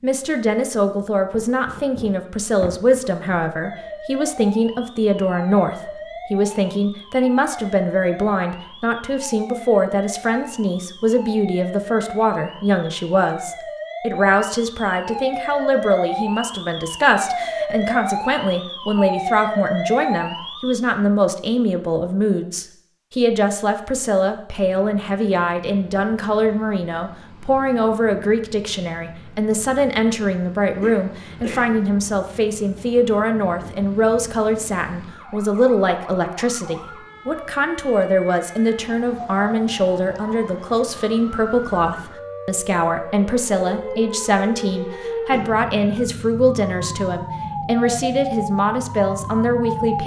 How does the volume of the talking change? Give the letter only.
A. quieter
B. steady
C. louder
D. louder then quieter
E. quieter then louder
B.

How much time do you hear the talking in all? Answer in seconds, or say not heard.
50 s.